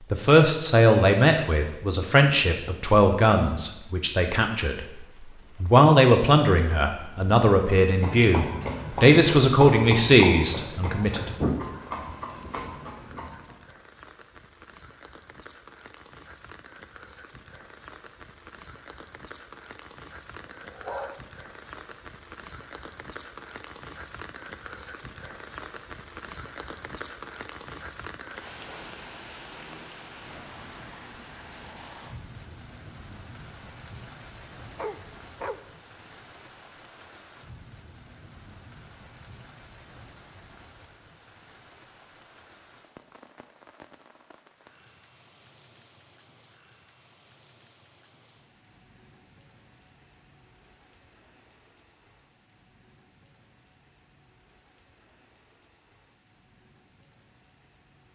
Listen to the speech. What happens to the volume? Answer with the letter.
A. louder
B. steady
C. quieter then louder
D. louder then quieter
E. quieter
B.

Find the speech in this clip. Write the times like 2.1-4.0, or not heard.
0.1-4.8, 5.6-11.5.